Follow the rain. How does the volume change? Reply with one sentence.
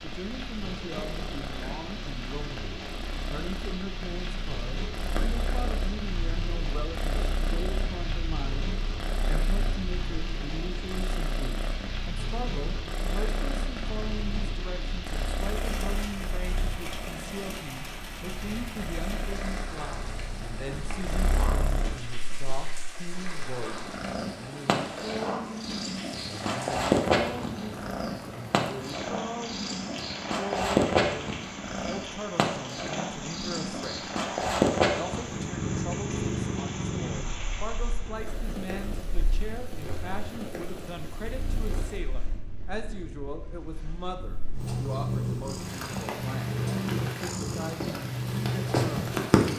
The volume of the rain stays about the same.